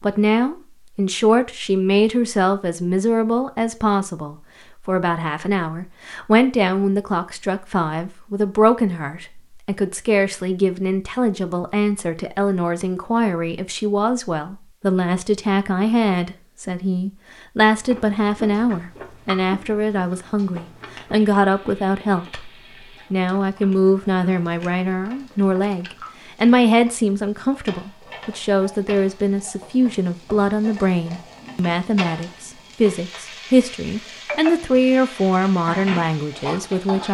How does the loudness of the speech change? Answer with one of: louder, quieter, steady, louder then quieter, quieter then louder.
steady.